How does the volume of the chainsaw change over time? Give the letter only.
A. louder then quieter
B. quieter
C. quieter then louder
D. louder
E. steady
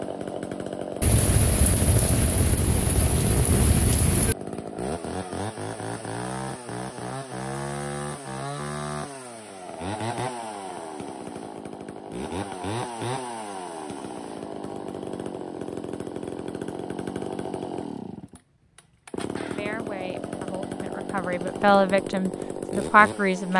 E.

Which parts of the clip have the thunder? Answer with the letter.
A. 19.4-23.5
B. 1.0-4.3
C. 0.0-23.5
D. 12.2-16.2
B.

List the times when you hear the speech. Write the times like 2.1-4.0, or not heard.
19.4-23.5.